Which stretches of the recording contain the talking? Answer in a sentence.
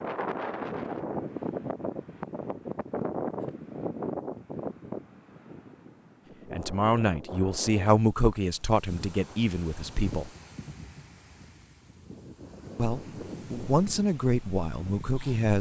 You can hear the talking from 6.5 to 10.3 s and from 12.8 to 15.5 s.